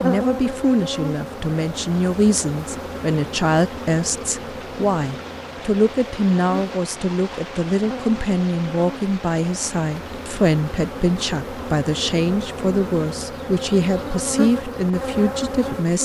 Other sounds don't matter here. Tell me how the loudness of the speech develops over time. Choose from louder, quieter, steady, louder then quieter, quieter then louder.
steady.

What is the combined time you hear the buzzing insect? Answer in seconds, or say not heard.
16 s.